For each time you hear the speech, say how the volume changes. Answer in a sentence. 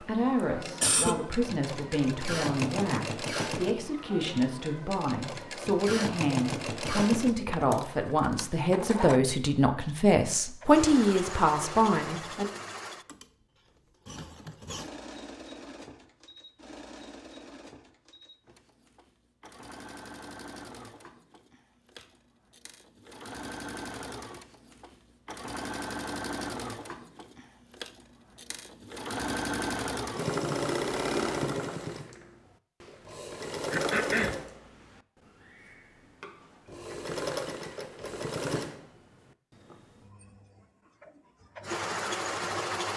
You can hear the speech from 0.0 to 12.4 s, getting louder.